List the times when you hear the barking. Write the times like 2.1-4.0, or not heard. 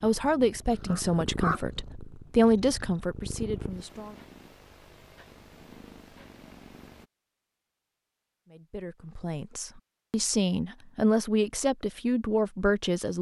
0.0-1.6.